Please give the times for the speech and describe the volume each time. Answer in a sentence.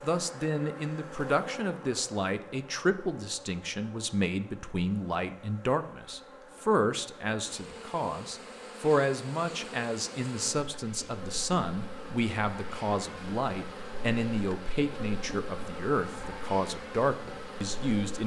The speech can be heard from 0.0 to 18.2 s, at a steady volume.